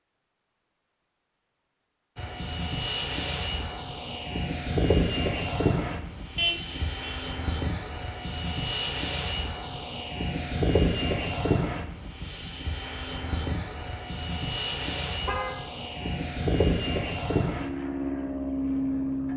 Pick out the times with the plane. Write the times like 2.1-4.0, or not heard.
2.1-19.3.